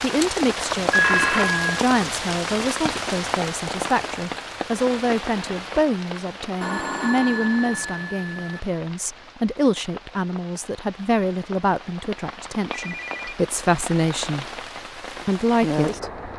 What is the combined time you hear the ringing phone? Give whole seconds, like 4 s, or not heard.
4 s.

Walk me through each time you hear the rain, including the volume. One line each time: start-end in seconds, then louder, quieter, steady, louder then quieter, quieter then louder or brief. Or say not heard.
0.0-16.3 quieter then louder.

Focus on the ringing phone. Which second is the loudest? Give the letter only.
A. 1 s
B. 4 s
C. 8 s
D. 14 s
A.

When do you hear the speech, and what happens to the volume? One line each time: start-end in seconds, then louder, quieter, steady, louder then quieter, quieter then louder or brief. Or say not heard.
0.0-14.4 steady
15.2-16.2 brief.